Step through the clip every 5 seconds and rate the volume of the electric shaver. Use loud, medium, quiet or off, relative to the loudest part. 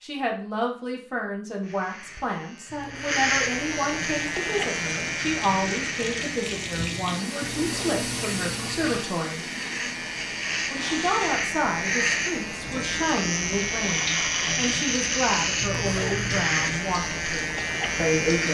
loud, medium, loud, loud.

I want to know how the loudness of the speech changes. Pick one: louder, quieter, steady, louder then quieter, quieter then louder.
steady.